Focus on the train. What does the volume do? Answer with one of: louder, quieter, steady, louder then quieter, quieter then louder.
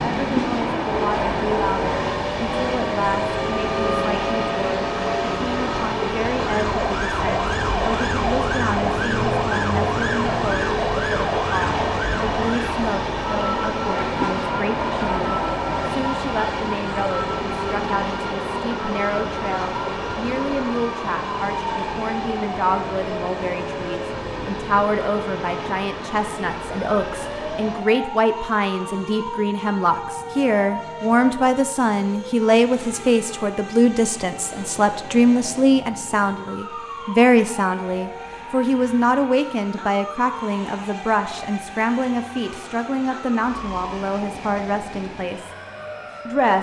quieter.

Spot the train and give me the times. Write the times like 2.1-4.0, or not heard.
0.0-46.5.